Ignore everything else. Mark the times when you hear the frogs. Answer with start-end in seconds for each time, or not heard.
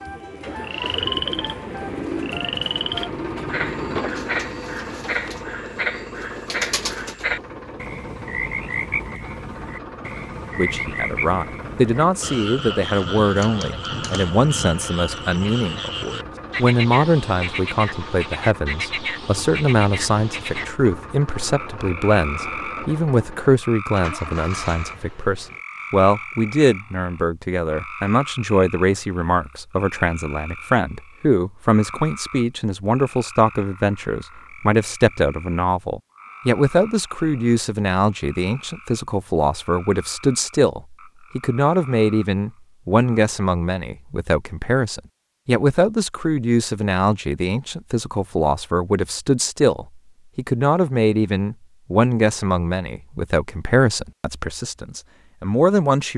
0.0-43.2.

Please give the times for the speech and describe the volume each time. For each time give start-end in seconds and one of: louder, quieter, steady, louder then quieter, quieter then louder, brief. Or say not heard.
10.6-56.1 steady.